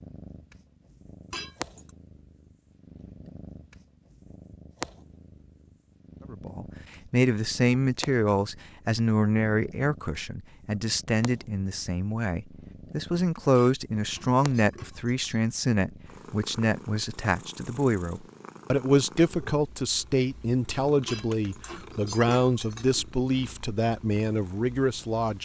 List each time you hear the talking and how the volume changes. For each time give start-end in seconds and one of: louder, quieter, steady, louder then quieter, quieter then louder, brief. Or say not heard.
6.3-25.4 steady.